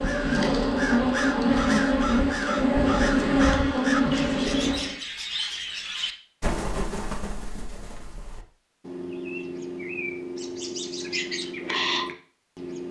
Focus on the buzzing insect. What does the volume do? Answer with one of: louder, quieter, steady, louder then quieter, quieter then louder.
steady.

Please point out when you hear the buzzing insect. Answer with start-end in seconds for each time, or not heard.
0.0-5.0.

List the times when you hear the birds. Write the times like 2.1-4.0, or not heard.
0.0-12.8.